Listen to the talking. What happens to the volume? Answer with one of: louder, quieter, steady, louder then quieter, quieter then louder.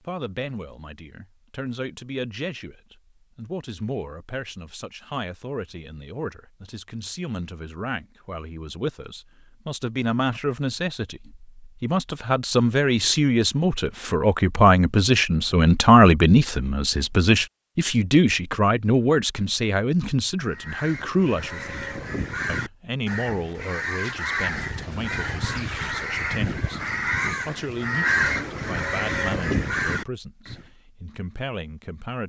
louder then quieter.